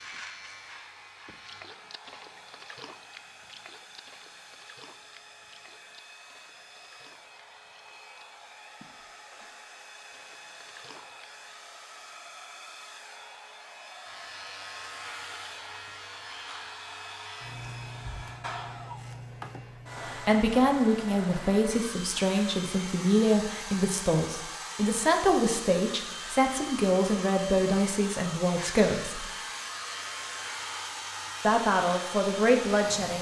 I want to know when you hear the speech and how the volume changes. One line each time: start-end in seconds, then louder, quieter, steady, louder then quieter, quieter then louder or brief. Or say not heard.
20.1-29.2 steady
31.4-33.1 brief.